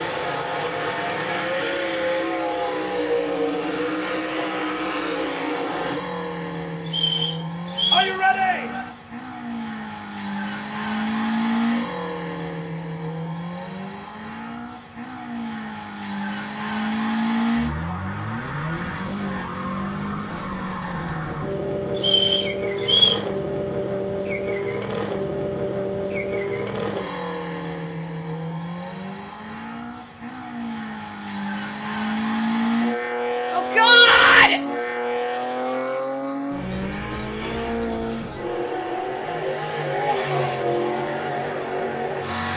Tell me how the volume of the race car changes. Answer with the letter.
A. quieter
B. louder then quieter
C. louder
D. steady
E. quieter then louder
D.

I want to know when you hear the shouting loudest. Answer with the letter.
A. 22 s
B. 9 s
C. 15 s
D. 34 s
D.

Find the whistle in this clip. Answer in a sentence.
The whistle can be heard from 6.8 to 8.2 s and from 21.9 to 23.2 s.